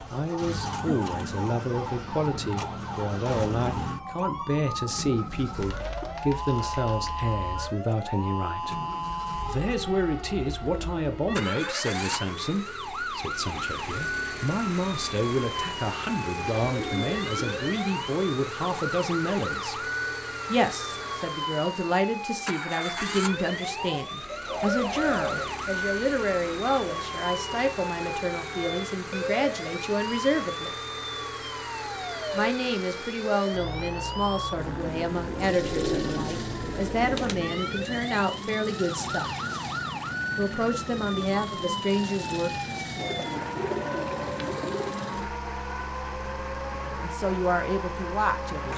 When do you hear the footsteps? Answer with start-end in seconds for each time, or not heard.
not heard.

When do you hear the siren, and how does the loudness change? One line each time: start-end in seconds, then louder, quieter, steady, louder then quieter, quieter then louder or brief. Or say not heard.
0.0-48.7 steady.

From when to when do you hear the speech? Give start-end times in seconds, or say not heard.
0.1-8.8, 9.4-19.9, 20.5-30.8, 32.3-39.4, 40.4-43.0, 47.0-48.7.